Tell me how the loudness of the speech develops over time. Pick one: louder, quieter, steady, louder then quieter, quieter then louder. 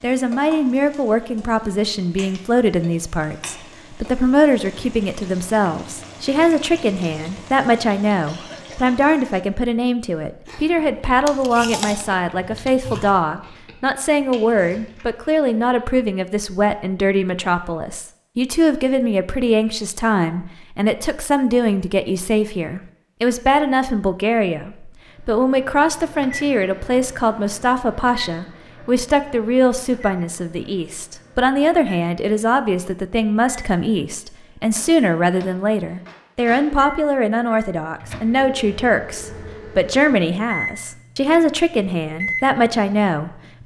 steady.